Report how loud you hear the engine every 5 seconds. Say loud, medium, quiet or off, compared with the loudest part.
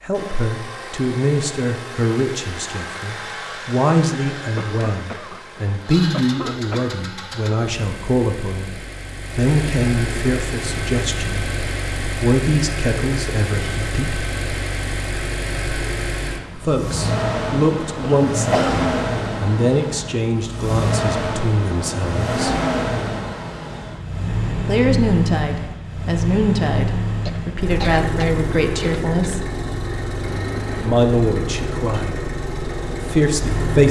medium, medium, loud, loud, loud, loud, loud.